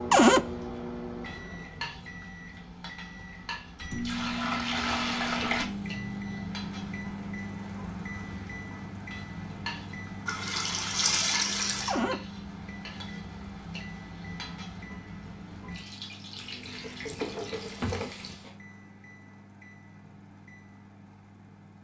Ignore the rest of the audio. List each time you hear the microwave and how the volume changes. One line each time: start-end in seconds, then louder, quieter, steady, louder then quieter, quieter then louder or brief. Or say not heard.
0.0-21.7 quieter.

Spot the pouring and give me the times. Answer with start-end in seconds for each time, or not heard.
3.8-5.7, 10.2-12.0, 16.4-18.4.